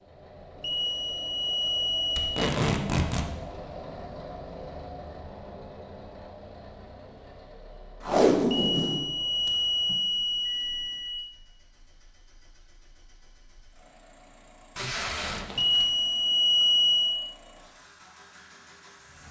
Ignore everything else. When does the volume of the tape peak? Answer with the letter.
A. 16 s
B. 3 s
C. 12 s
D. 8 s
D.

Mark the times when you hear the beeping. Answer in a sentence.
The beeping can be heard from 0.6 to 2.4 s, from 8.5 to 11.2 s and from 15.6 to 17.2 s.